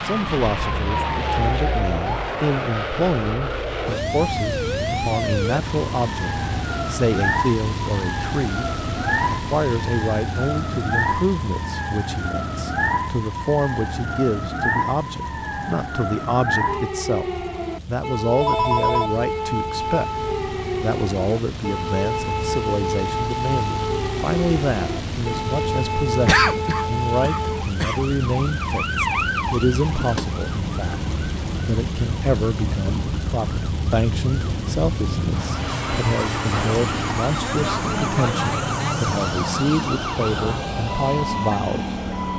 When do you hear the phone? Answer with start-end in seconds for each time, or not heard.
18.4-19.1.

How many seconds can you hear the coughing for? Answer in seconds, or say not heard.
2 s.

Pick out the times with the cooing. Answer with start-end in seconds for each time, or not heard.
not heard.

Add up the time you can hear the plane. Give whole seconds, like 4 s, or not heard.
42 s.